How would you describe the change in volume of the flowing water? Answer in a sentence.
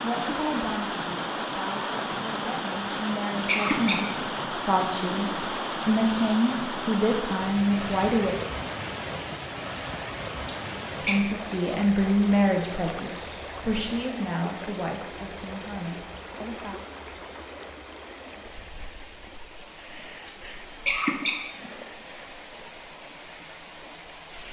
The loudness of the flowing water goes down.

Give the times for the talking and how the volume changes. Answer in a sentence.
You can hear the talking from 0.0 to 8.3 s, getting louder; and from 11.0 to 16.8 s, getting quieter.